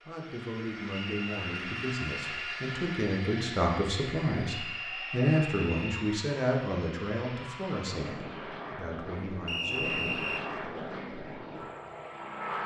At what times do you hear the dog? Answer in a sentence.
The dog can't be heard in this clip.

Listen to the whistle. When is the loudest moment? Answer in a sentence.
The loudest moment of the whistle is at 10 seconds.